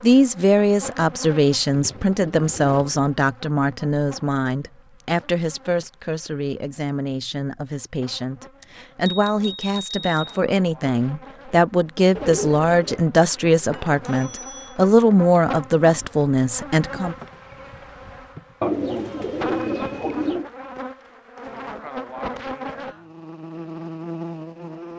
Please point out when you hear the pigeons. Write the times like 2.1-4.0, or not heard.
1.7-3.0, 12.2-14.5, 18.6-20.5.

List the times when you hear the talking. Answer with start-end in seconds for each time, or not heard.
0.0-17.1.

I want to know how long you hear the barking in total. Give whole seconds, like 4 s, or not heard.
not heard.